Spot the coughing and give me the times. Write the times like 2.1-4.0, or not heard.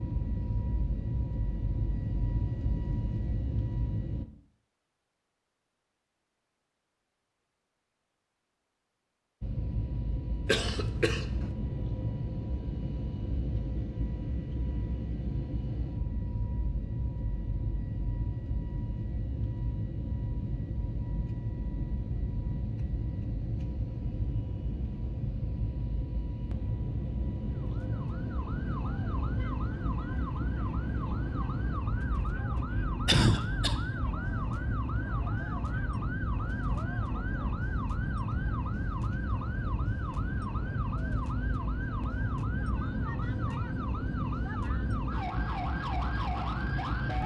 10.4-11.4, 33.0-33.8.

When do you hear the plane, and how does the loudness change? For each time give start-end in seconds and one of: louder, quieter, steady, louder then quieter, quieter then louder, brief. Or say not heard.
0.0-4.2 steady
9.4-47.2 steady.